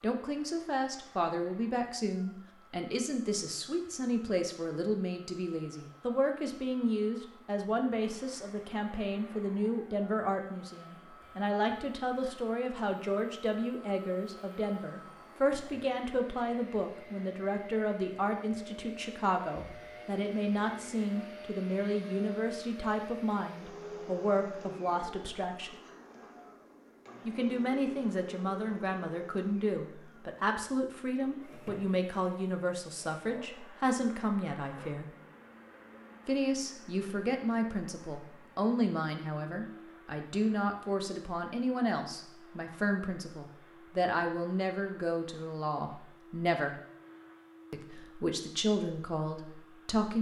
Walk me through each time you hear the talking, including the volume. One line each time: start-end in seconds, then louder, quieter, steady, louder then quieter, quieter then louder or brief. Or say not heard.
0.0-25.8 steady
27.2-35.1 steady
36.2-46.8 steady
47.7-50.1 brief.